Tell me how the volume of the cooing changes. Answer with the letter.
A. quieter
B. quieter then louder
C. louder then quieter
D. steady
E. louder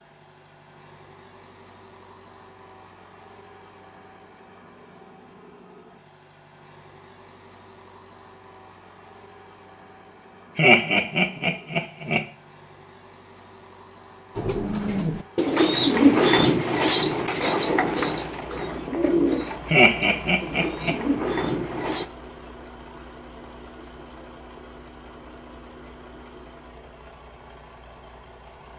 A.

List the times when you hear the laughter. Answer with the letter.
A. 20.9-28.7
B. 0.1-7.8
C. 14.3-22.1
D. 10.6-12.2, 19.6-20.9
D.